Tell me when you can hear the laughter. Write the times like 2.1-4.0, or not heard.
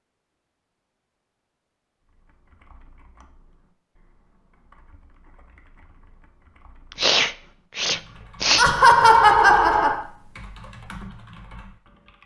8.6-10.0.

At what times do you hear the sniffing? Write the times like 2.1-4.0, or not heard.
6.9-8.7.